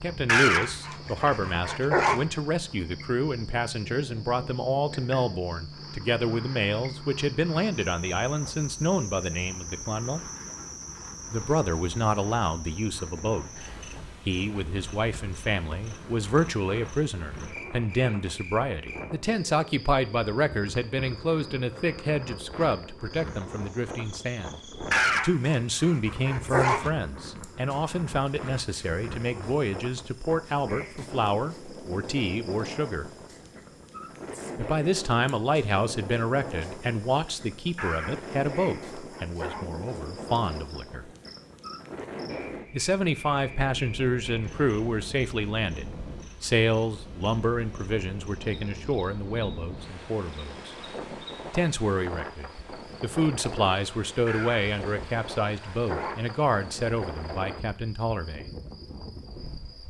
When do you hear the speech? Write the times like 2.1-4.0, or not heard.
0.0-10.2, 11.3-24.6, 25.2-33.1, 34.5-41.1, 42.7-50.8, 51.5-58.5.